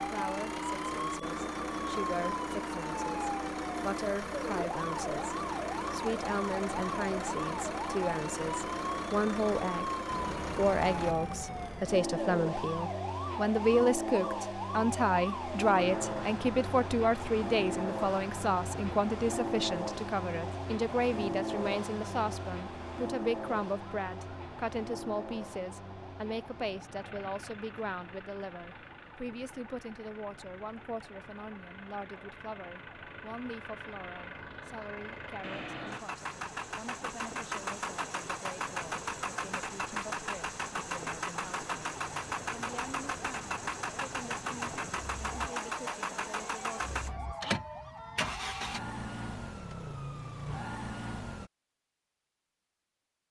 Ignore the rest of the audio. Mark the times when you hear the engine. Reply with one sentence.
The engine can be heard from 0.0 to 48.8 s.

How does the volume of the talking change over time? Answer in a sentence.
The volume of the talking goes up, then down.